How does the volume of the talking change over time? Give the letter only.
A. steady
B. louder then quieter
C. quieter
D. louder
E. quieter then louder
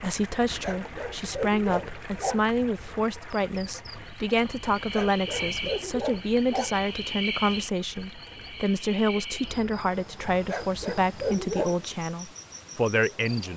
A.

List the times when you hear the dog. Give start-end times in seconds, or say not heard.
0.5-2.5, 4.8-6.8, 10.3-11.8.